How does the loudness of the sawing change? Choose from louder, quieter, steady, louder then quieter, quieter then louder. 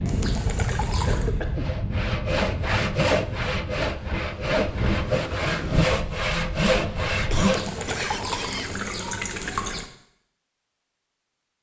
steady.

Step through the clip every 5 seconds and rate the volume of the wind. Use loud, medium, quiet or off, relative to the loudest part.
loud, loud, off.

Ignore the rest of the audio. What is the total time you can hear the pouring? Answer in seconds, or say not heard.
4 s.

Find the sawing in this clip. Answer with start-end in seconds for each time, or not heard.
1.5-7.8.